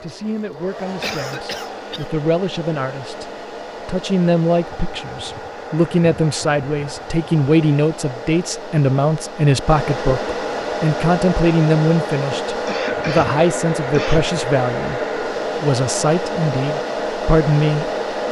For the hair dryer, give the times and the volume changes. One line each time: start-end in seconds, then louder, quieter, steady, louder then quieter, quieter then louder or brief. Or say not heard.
0.0-18.2 louder.